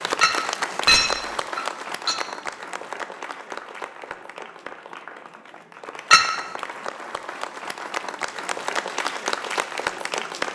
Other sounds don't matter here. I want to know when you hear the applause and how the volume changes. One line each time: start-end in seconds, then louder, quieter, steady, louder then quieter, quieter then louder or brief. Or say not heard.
0.0-10.4 quieter then louder.